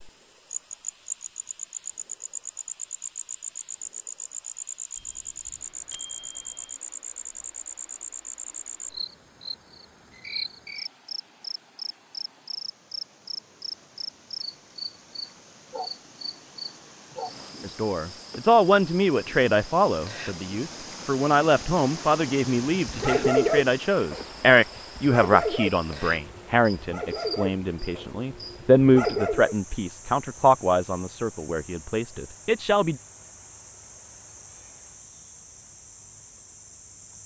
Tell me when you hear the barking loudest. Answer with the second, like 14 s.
23 s.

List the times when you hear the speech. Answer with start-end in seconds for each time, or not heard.
17.6-33.0.